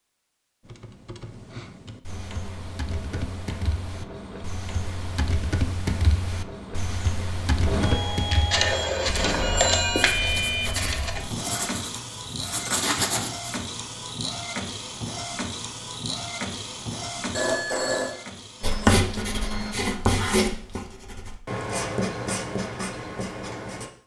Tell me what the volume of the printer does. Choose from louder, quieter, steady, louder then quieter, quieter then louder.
louder then quieter.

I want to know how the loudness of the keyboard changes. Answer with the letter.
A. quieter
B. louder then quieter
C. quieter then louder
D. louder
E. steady
B.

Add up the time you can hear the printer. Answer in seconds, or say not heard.
18 s.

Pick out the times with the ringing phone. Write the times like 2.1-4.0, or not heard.
8.6-10.2, 17.3-18.1.